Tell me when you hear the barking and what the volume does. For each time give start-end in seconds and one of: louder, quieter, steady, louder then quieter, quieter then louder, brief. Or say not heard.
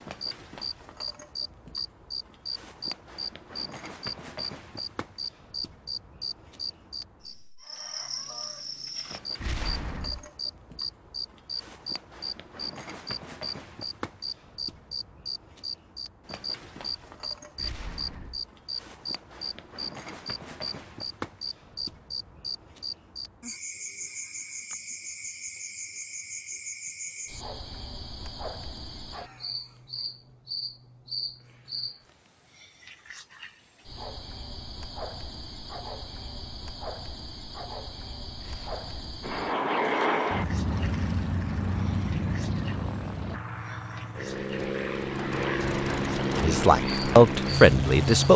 not heard.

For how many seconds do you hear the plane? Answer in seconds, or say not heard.
9 s.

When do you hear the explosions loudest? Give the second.
10 s.